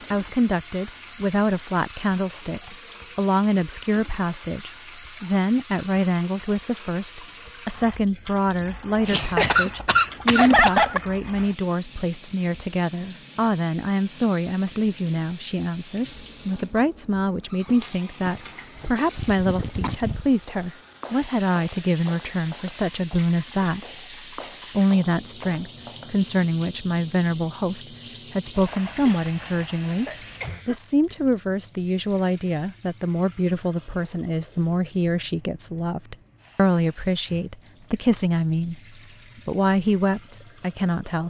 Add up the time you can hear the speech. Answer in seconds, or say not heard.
39 s.